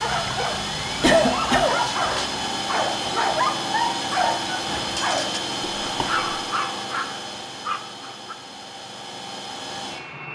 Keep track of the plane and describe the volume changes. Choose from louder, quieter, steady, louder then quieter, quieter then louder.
quieter.